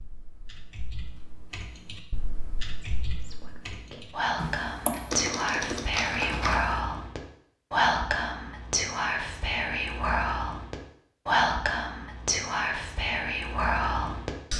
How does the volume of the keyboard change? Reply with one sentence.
The volume of the keyboard goes up.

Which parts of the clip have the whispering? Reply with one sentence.
The whispering can be heard from 2.8 to 14.5 s.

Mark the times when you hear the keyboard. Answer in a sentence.
You can hear the keyboard from 0.0 to 6.8 s.